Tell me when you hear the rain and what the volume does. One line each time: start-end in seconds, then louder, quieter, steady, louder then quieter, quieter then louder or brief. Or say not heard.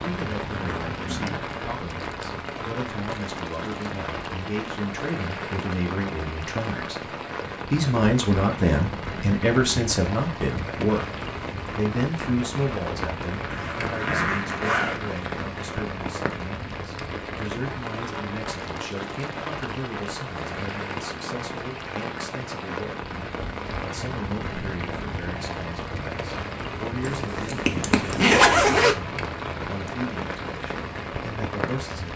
0.0-32.1 steady.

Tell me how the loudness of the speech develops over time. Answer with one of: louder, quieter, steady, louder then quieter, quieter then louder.
louder then quieter.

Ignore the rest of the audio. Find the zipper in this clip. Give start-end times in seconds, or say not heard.
0.6-1.4, 13.5-15.1, 27.0-28.9.